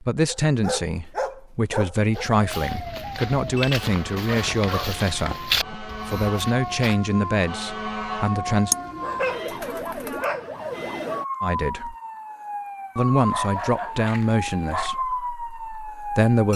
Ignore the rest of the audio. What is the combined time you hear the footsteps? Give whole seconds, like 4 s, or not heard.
5 s.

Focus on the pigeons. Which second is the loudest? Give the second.
9 s.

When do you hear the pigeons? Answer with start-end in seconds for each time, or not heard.
8.7-10.2.